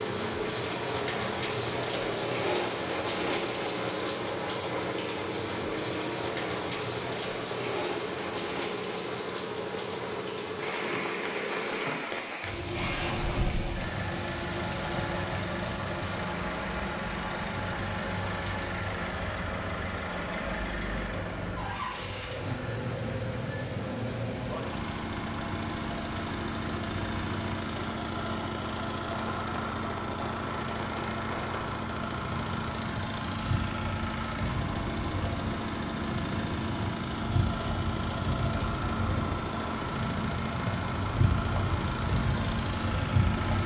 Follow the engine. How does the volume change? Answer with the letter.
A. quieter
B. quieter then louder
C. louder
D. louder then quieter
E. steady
E.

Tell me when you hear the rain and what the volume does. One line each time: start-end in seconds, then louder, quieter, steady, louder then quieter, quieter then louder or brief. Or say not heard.
0.0-43.6 quieter then louder.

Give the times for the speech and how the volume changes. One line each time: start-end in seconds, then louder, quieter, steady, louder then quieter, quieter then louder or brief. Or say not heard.
not heard.